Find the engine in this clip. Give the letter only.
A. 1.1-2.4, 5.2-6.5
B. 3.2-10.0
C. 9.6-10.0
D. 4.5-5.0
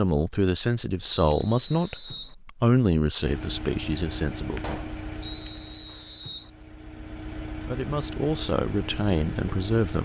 B.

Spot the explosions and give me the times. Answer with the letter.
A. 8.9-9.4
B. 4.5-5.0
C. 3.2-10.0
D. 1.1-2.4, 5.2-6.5
B.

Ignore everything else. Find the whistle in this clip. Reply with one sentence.
The whistle can be heard from 1.1 to 2.4 s and from 5.2 to 6.5 s.